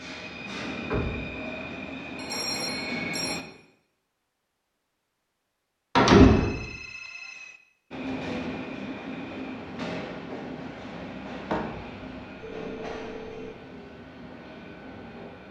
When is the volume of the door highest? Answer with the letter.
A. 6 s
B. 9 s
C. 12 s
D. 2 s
A.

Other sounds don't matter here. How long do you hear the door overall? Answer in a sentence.
The door can be heard for 2 seconds in total.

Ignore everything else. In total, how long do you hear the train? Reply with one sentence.
You can hear the train for 11 seconds altogether.